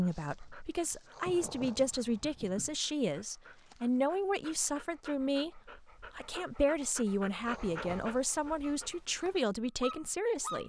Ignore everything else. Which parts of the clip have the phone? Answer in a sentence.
You can't hear the phone here.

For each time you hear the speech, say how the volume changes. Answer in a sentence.
The speech can be heard from 0.0 to 10.6 s, at a steady volume.